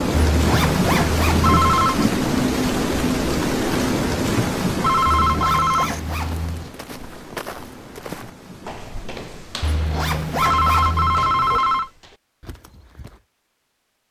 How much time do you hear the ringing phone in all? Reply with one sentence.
The ringing phone can be heard for 3 seconds in total.